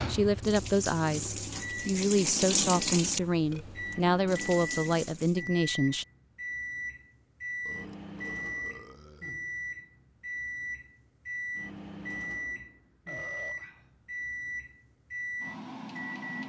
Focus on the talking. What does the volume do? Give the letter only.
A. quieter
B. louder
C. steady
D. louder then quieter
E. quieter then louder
C.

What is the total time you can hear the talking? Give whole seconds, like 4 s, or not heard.
6 s.